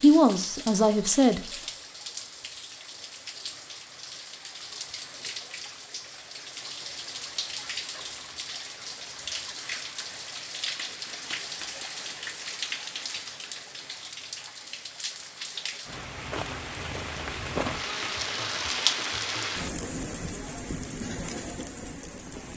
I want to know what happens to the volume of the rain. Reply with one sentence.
The loudness of the rain goes up.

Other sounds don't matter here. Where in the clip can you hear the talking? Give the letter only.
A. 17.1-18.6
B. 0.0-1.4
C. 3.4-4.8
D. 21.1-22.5
B.